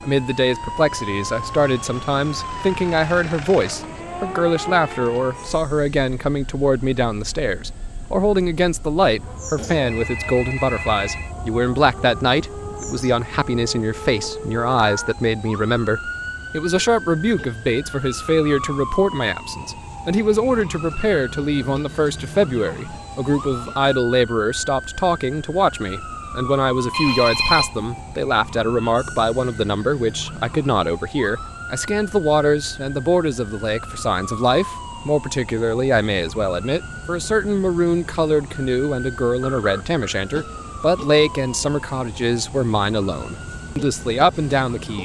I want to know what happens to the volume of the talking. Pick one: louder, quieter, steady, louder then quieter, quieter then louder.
steady.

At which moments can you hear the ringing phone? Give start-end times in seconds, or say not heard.
9.6-11.3, 26.9-27.9, 39.4-40.0.